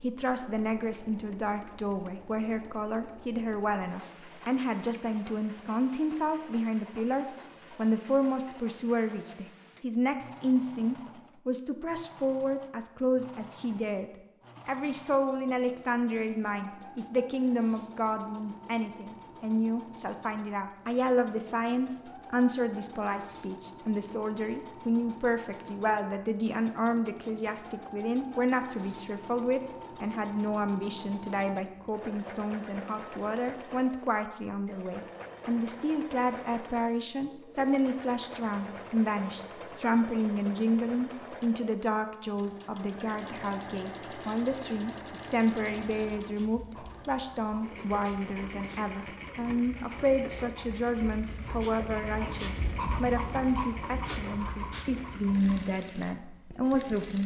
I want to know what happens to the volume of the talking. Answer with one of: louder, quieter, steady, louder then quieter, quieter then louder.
steady.